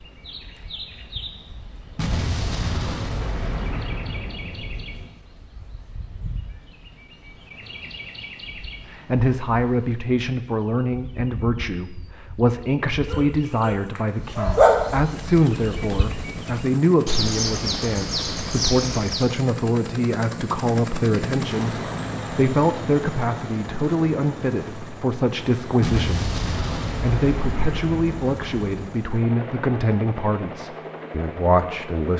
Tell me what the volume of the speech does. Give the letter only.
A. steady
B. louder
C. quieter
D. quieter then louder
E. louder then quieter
A.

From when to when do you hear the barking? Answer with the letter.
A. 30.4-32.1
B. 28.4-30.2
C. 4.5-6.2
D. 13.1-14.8
D.